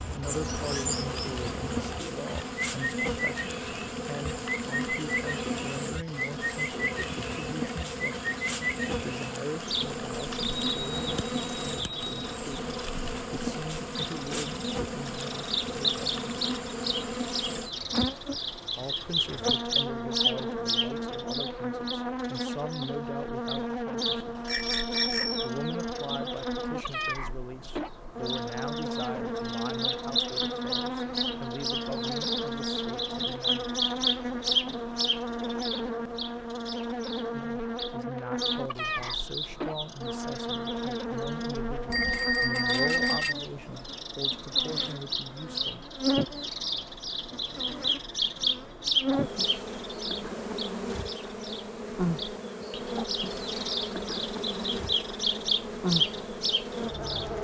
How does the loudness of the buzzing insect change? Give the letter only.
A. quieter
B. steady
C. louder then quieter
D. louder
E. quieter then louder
B.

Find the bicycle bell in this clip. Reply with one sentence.
You can hear the bicycle bell from 10.4 to 12.2 s, from 24.4 to 25.5 s and from 41.9 to 43.4 s.